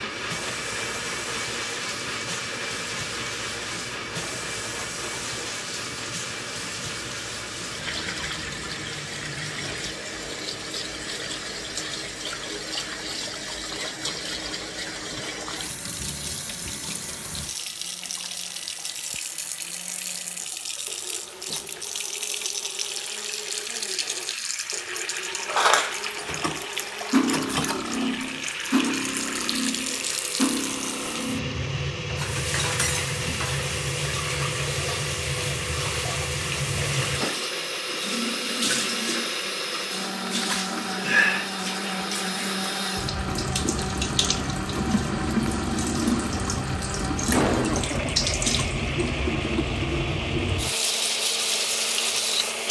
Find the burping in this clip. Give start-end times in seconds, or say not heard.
not heard.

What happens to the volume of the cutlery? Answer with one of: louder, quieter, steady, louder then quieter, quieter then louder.
quieter.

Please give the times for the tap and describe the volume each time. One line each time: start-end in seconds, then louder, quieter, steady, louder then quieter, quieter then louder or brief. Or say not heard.
0.0-52.6 louder.